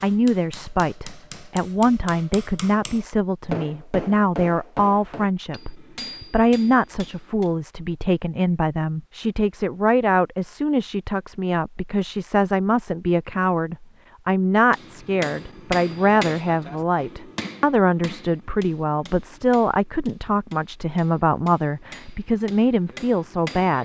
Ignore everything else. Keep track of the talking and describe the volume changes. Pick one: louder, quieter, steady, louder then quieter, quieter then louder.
steady.